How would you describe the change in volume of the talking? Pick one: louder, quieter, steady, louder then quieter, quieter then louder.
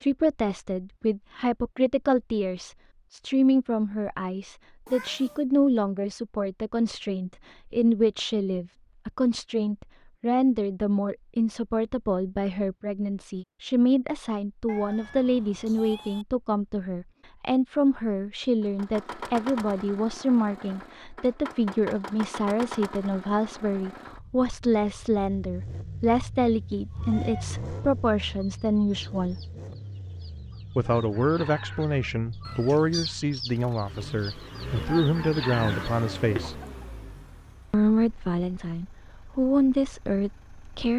steady.